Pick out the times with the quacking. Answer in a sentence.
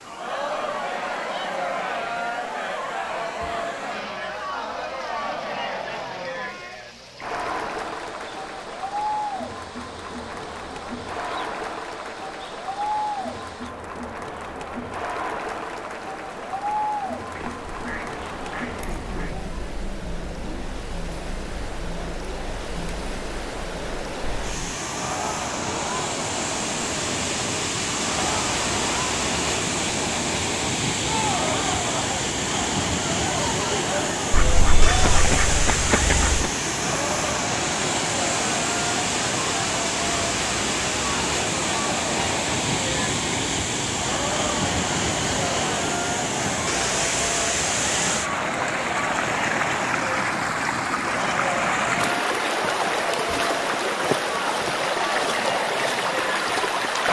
You can hear the quacking from 17.4 to 19.4 s and from 34.3 to 36.5 s.